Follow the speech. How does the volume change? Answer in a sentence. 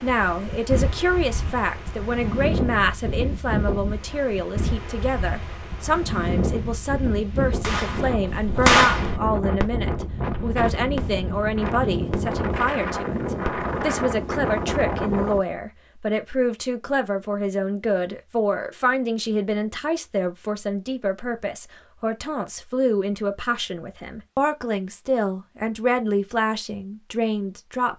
The loudness of the speech stays about the same.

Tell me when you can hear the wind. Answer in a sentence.
You can hear the wind from 0.0 to 15.4 s.